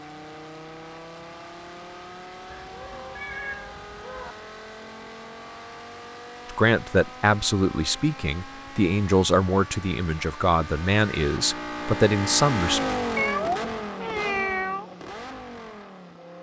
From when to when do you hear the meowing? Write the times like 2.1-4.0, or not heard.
2.5-4.3, 13.2-14.8.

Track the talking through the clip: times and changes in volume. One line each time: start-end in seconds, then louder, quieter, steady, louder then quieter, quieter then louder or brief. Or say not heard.
6.5-12.8 steady.